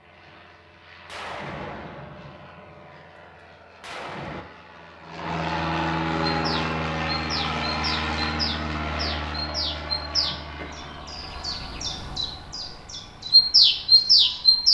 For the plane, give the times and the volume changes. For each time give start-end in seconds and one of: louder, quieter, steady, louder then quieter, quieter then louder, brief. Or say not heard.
0.0-14.7 louder then quieter.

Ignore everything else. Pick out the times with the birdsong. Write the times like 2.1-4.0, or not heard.
6.3-14.7.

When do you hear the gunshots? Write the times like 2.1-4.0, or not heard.
1.1-4.5.